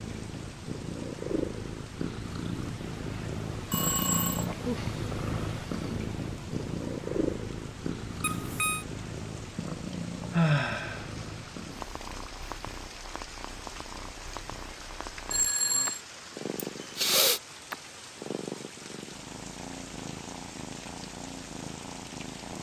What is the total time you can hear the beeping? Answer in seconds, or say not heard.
2 s.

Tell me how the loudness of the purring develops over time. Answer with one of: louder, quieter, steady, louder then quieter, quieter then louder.
quieter.